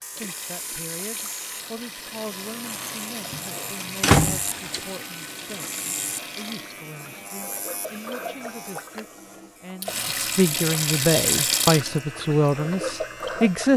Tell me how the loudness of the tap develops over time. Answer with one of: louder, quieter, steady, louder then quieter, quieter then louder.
louder.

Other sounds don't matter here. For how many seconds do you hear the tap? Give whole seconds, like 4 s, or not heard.
14 s.